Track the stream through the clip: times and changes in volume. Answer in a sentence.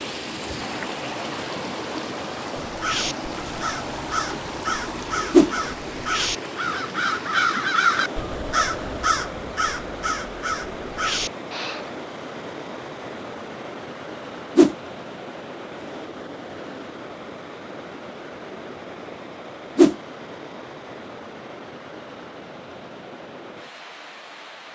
The stream can be heard from 0.0 to 24.7 s, getting quieter.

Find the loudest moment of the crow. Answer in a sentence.
The loudest moment of the crow is at 8 seconds.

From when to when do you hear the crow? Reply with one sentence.
The crow can be heard from 2.6 to 11.9 s.